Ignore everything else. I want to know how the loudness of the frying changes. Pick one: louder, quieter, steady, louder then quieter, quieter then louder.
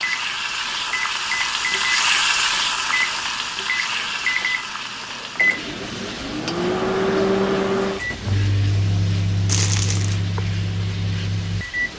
quieter.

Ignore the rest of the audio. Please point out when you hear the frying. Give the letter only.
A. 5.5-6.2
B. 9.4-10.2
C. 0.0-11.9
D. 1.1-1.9
C.